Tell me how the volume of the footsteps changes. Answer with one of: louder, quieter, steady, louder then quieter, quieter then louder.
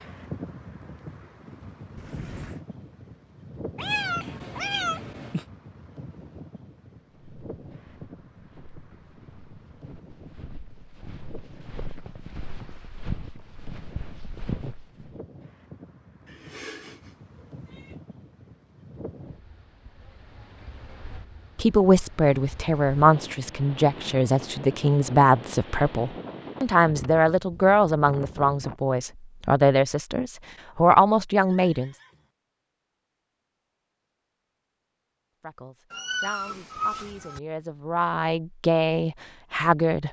louder.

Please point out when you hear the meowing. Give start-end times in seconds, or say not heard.
3.8-5.5, 16.2-17.9, 35.9-37.4.